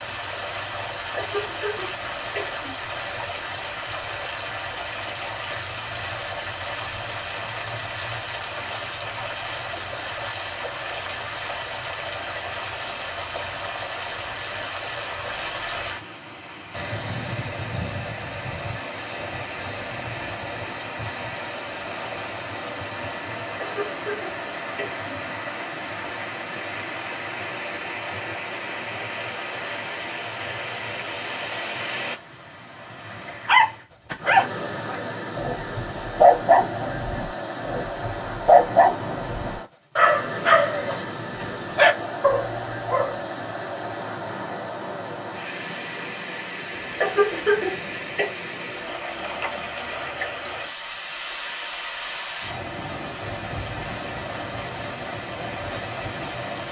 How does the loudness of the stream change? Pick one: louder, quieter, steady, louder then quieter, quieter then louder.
steady.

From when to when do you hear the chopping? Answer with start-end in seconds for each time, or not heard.
not heard.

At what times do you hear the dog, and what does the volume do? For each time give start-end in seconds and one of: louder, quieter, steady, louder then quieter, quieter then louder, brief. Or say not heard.
33.2-43.1 steady.